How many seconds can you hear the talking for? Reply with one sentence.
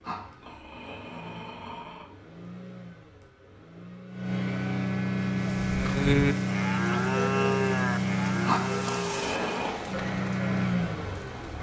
The talking can't be heard in this clip.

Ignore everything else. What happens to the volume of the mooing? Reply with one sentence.
The loudness of the mooing goes down.